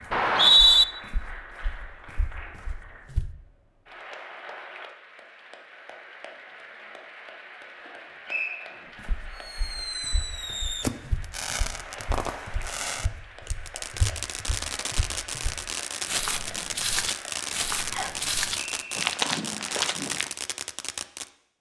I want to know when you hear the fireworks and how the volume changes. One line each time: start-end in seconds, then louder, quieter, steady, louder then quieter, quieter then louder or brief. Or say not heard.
9.3-21.3 steady.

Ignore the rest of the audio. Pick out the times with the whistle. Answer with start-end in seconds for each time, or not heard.
0.1-0.8, 8.2-8.8, 17.9-19.1.